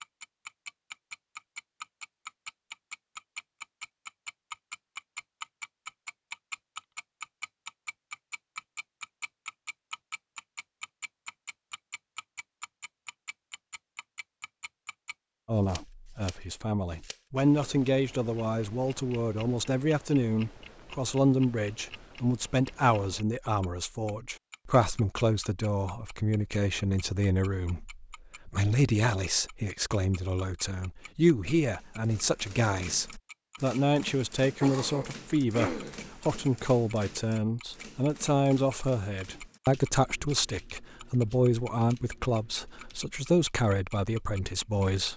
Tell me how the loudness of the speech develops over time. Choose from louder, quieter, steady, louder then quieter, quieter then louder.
steady.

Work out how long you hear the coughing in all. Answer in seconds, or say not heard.
2 s.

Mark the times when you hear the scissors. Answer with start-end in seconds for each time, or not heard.
not heard.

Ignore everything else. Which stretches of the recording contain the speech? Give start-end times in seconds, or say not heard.
15.4-45.1.